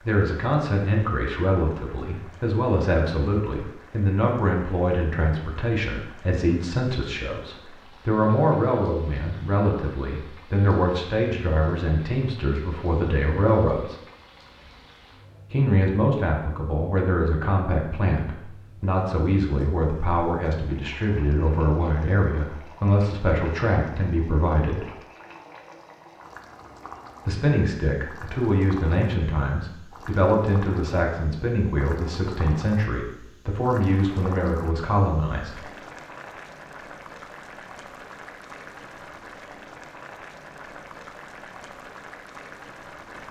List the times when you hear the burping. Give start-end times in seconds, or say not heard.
not heard.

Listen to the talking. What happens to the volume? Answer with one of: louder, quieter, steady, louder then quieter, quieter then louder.
steady.